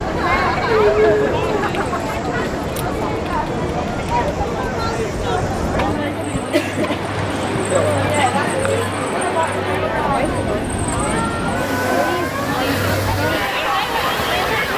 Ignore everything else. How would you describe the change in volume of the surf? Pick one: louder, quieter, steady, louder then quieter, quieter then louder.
steady.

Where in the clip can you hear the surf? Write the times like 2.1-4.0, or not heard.
0.0-14.7.